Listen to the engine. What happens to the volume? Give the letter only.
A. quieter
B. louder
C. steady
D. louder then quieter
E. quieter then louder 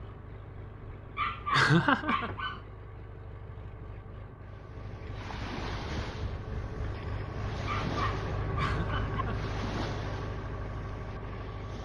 B.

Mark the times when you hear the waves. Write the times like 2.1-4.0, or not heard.
4.5-11.8.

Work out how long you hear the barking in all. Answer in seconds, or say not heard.
3 s.